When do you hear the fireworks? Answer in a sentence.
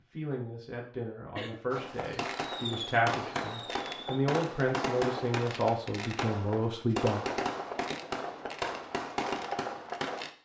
You can hear the fireworks from 1.7 to 10.3 s.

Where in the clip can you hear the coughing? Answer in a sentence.
You can hear the coughing from 1.4 to 1.8 s.